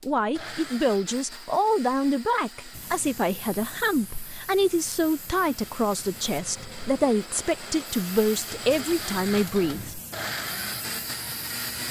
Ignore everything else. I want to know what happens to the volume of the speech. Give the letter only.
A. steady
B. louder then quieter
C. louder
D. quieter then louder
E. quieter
A.